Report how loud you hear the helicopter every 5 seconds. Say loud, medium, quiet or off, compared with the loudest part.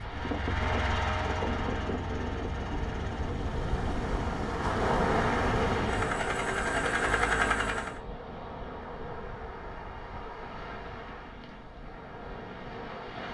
medium, loud, off.